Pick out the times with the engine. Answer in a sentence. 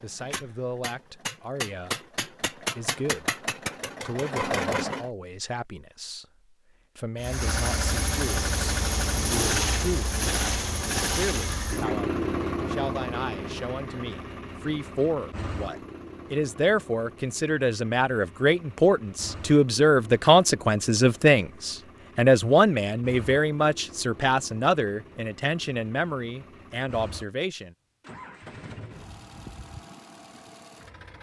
The engine can be heard from 0.0 to 5.1 s and from 7.2 to 31.1 s.